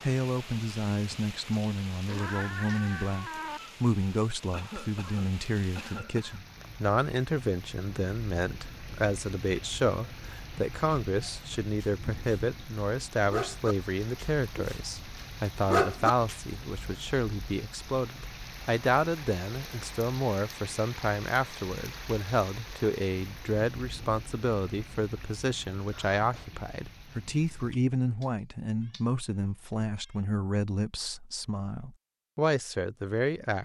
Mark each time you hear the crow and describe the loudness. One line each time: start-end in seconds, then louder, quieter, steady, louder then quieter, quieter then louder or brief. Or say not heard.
not heard.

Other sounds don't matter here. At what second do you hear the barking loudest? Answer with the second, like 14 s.
16 s.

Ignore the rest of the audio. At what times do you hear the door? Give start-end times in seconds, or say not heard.
not heard.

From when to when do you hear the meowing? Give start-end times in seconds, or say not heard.
2.0-3.6, 27.6-29.1, 29.7-30.1.